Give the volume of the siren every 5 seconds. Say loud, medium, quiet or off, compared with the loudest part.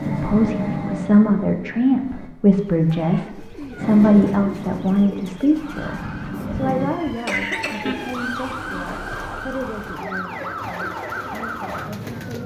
off, loud, loud.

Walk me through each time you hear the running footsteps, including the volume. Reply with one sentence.
The running footsteps can't be heard in this clip.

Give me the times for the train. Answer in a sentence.
You can hear the train from 0.0 to 2.3 s and from 3.8 to 6.9 s.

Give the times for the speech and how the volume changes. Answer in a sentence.
You can hear the speech from 0.0 to 12.4 s, getting quieter.